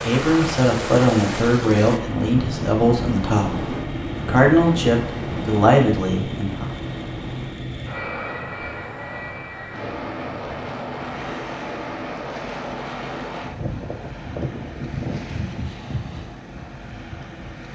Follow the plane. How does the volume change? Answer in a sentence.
The volume of the plane stays about the same.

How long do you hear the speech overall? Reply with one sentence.
You can hear the speech for 7 seconds altogether.